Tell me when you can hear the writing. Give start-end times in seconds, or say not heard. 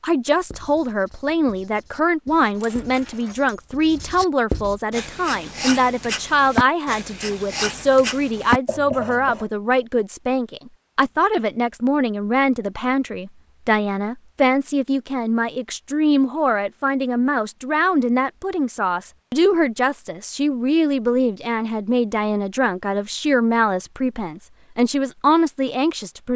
0.3-9.4.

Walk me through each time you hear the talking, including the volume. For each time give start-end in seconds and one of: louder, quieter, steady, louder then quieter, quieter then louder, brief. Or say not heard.
0.0-26.3 steady.